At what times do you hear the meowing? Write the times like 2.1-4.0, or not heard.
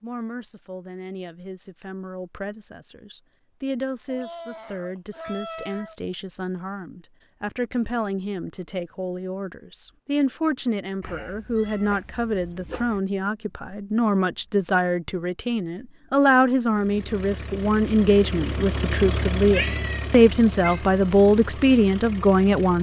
4.0-6.0, 11.0-13.0, 19.5-20.9.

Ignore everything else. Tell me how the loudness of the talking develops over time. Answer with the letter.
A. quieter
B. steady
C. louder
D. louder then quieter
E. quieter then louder
C.